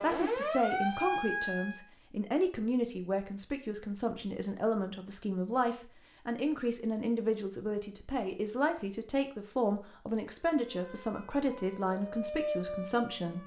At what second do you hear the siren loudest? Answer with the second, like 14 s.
1 s.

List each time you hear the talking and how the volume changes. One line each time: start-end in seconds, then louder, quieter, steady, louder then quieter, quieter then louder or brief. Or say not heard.
0.0-13.4 steady.